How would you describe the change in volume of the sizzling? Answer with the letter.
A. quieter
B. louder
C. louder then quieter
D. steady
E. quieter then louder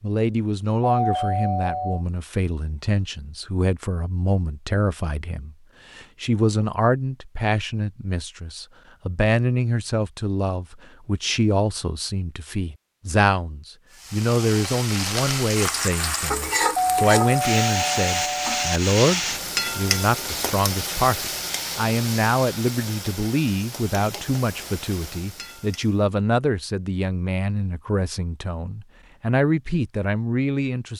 A.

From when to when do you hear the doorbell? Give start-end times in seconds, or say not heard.
0.9-2.0, 16.8-18.8.